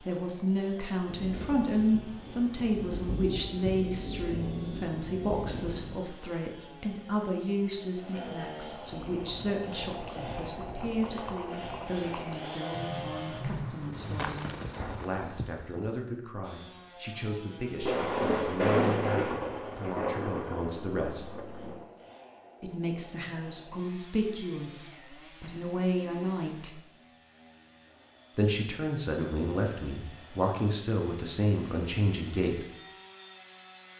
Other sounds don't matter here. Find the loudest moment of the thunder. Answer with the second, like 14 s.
19 s.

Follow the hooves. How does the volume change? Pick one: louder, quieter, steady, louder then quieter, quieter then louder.
louder.